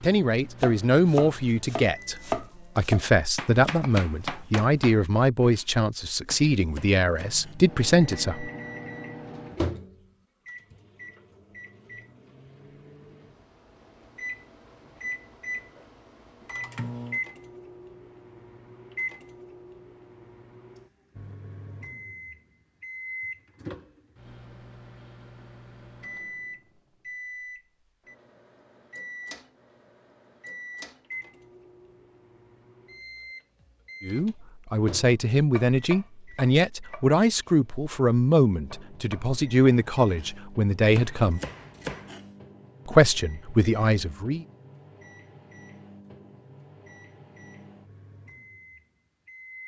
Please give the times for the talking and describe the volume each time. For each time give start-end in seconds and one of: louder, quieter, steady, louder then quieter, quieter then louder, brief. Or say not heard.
0.0-8.5 steady
34.0-41.4 steady
42.9-44.5 brief.